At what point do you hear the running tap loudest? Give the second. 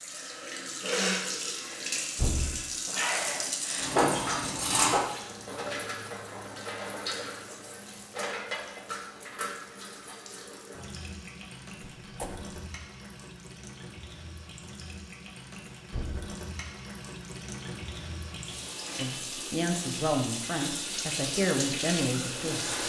4 s.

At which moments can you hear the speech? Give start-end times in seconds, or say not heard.
18.9-22.8.